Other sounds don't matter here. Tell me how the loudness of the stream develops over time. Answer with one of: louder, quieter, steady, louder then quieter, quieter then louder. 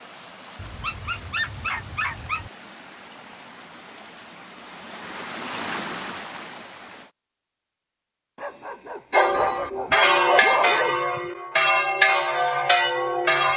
louder.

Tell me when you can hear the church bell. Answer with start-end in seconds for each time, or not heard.
9.1-13.5.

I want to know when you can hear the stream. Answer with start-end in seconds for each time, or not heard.
0.0-7.2.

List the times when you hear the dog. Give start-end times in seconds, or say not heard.
0.6-2.5, 8.3-10.9.